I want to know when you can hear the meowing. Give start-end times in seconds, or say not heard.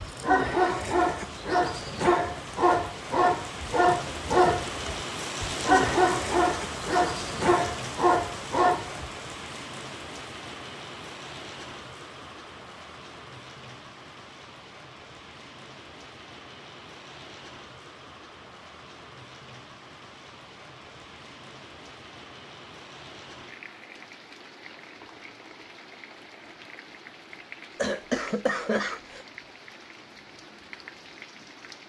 not heard.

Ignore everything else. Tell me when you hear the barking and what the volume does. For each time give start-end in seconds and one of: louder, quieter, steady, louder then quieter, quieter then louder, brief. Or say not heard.
0.0-9.1 steady.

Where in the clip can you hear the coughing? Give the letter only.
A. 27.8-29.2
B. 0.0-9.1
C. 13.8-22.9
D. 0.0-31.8
A.